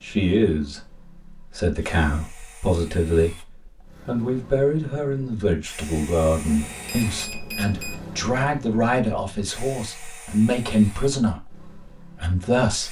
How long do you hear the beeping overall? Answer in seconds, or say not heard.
2 s.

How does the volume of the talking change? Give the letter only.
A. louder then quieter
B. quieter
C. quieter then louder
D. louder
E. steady
E.